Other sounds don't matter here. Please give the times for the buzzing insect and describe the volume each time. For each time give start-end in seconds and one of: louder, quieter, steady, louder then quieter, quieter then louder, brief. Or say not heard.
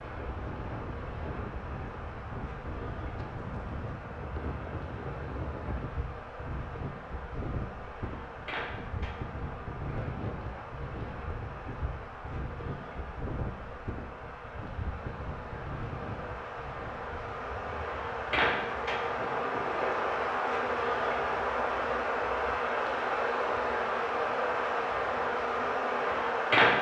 0.0-26.7 louder.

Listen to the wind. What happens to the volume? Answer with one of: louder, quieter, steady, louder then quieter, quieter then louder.
quieter.